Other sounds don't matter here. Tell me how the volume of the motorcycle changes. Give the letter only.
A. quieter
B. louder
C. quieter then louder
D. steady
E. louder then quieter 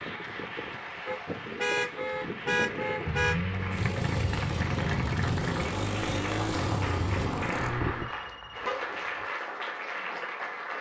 D.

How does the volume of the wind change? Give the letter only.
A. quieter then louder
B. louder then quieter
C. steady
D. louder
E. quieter
C.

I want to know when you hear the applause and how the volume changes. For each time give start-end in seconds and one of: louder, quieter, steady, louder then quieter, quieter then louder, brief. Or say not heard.
0.0-10.7 louder.